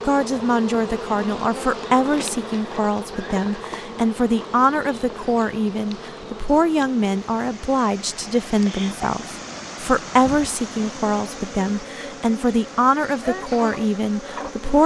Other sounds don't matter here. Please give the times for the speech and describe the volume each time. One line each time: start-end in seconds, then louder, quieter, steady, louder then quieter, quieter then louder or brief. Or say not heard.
0.1-14.8 steady.